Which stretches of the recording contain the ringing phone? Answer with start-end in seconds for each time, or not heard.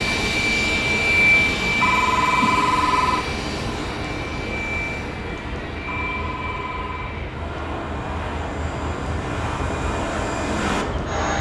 1.8-3.2, 5.8-7.2.